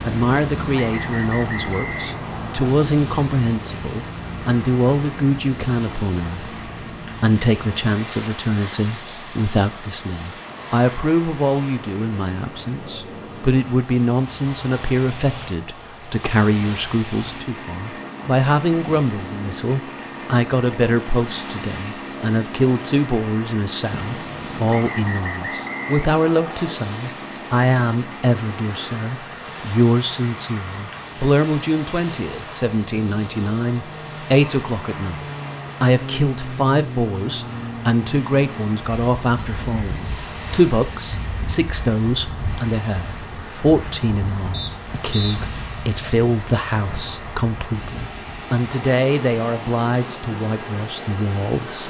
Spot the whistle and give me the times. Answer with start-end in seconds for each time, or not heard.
0.7-2.8, 24.6-26.7, 44.5-45.4.